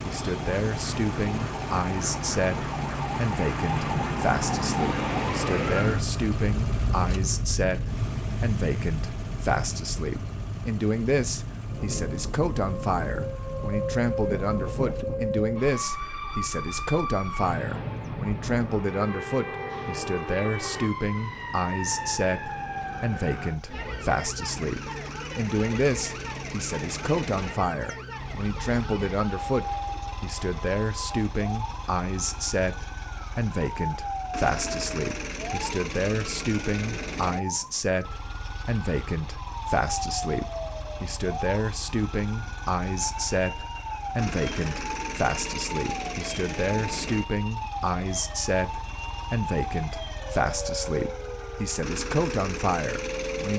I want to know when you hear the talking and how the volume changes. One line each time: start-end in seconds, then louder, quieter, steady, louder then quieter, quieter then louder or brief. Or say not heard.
0.1-53.5 steady.